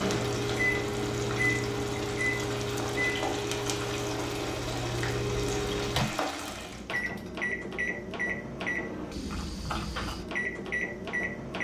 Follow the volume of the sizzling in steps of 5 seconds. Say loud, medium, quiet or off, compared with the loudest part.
loud, loud, off.